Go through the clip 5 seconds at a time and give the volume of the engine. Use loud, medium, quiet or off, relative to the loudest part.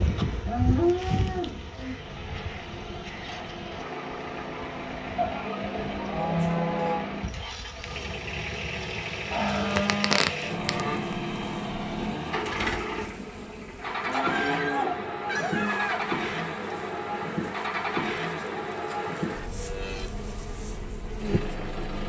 medium, loud, loud, loud, medium.